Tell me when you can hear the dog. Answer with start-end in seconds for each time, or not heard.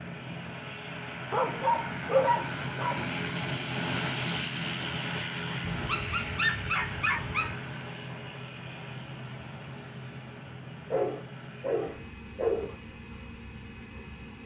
1.3-3.1, 5.8-7.5, 10.9-12.8.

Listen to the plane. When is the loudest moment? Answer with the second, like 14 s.
4 s.